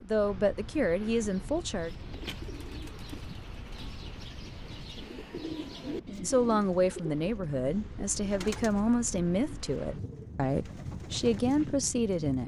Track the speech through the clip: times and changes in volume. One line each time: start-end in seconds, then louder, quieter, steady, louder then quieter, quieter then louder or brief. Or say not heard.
0.0-1.9 brief
6.2-12.4 steady.